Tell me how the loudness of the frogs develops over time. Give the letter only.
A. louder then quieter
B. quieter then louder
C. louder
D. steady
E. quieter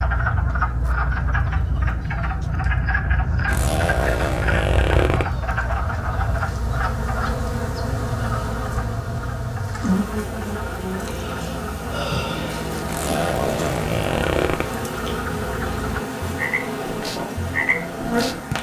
B.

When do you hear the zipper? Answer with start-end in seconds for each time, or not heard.
3.5-5.2, 12.8-14.7.